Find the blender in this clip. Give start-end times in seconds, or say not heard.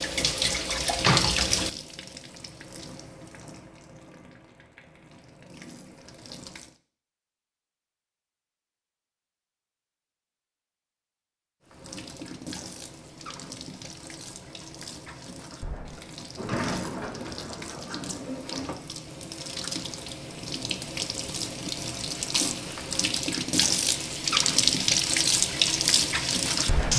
not heard.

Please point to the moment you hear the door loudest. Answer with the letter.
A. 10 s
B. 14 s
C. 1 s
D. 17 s
C.